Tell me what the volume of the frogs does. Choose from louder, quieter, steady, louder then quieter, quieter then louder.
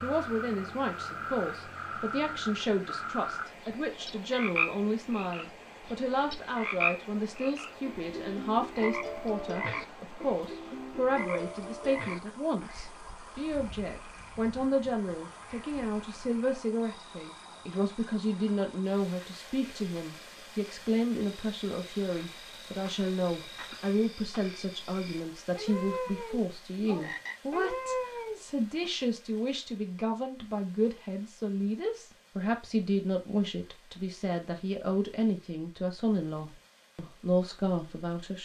quieter then louder.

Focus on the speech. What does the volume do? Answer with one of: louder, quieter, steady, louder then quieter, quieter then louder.
steady.